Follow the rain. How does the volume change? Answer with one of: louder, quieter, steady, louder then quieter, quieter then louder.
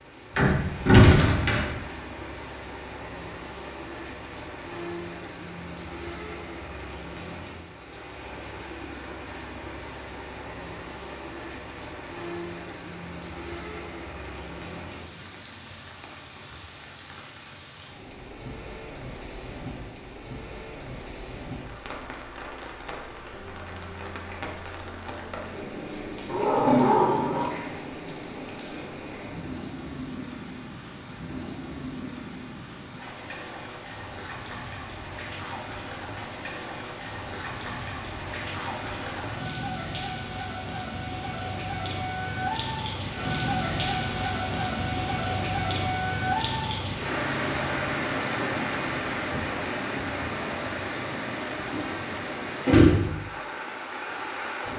louder.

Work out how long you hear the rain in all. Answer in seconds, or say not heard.
55 s.